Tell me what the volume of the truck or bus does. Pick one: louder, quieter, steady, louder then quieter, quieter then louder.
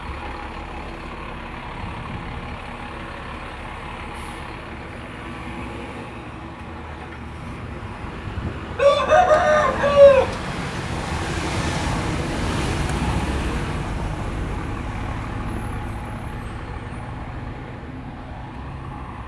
louder then quieter.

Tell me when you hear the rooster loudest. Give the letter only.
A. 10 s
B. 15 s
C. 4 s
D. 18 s
A.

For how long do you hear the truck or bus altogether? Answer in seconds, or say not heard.
19 s.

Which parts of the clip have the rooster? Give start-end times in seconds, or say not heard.
8.4-10.3.